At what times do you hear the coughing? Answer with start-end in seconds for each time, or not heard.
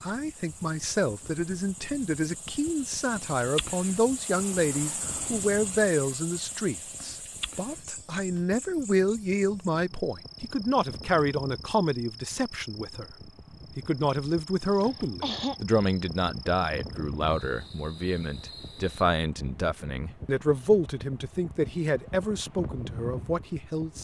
14.7-15.6.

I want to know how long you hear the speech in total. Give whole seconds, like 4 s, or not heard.
23 s.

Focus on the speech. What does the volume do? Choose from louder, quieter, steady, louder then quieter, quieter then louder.
steady.